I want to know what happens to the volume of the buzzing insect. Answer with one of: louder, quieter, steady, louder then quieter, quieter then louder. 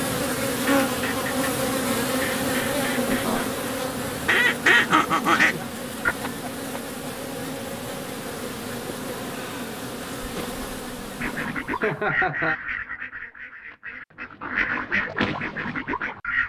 quieter.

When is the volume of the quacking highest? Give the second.
5 s.